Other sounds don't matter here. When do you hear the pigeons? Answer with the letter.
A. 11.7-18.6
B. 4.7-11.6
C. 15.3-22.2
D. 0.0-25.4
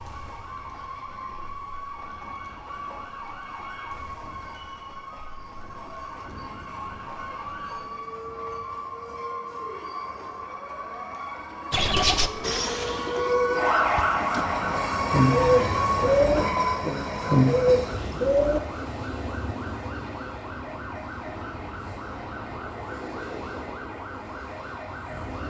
A.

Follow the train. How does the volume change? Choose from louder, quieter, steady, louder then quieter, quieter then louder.
louder then quieter.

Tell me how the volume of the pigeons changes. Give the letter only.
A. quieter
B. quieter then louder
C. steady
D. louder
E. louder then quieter
B.